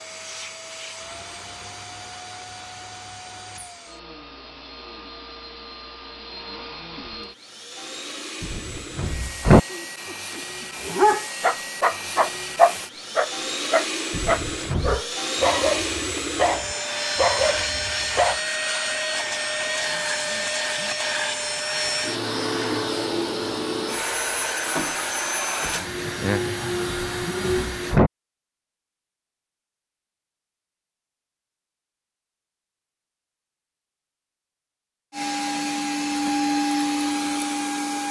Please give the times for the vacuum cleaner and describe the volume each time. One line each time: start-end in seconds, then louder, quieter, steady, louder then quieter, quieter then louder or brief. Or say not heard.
0.0-28.0 louder
35.1-38.0 brief.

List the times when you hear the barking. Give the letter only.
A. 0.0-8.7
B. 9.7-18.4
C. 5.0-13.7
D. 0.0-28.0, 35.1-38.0
B.